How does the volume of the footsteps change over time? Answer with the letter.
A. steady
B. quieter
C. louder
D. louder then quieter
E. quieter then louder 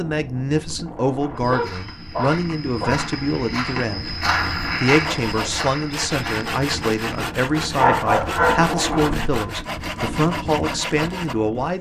D.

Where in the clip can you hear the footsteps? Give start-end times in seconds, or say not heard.
1.4-7.2.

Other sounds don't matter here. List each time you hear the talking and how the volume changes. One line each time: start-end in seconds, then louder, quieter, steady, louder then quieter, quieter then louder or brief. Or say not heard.
0.0-4.1 steady
4.8-11.7 steady.